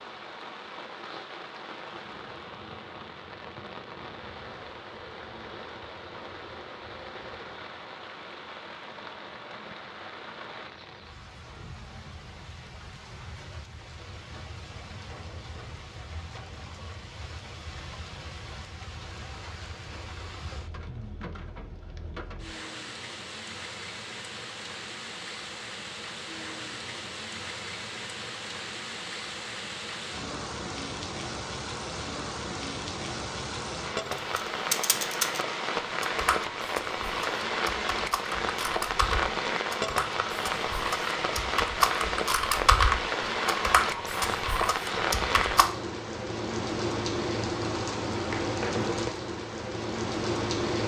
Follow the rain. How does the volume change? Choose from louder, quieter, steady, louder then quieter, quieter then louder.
louder.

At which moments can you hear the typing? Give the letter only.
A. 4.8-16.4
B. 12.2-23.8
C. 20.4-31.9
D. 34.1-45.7
D.